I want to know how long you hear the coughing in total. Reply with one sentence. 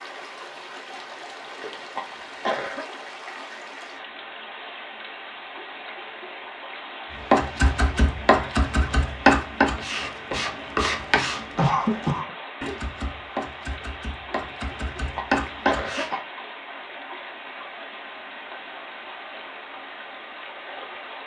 You can hear the coughing for 3 seconds altogether.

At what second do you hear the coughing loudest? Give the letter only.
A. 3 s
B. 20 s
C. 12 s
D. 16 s
C.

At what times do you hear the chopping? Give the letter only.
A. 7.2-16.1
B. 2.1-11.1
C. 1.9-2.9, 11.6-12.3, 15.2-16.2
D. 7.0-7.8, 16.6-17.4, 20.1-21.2
A.